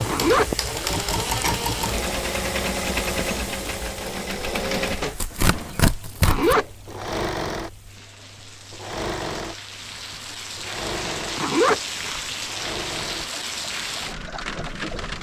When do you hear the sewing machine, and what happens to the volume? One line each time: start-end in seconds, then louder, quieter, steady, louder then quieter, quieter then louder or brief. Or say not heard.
0.0-15.1 quieter.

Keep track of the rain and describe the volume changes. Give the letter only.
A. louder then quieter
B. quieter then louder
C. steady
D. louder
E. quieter
B.